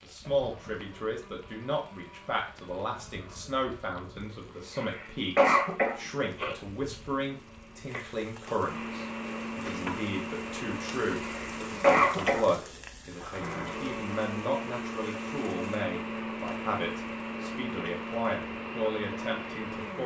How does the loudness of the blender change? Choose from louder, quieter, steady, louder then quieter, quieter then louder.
louder.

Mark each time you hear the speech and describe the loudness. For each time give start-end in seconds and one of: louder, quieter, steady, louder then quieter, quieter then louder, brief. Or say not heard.
0.0-20.0 steady.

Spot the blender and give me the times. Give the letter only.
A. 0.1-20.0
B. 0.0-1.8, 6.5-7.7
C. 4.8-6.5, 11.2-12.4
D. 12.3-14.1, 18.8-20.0
A.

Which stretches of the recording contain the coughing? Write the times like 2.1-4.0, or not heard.
4.8-6.5, 11.2-12.4.